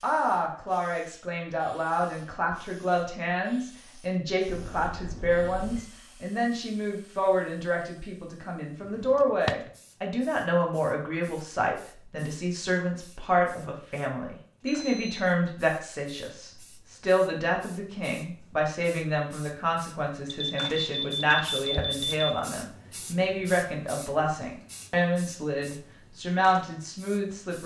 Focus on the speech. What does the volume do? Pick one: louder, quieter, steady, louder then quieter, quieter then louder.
steady.